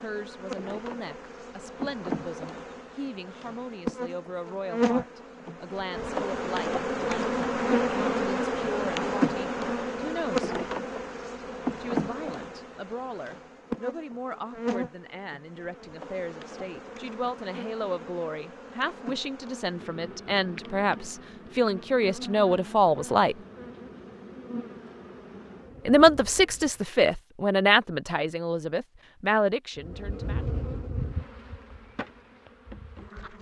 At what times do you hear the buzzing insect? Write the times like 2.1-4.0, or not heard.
0.0-26.9, 29.8-33.3.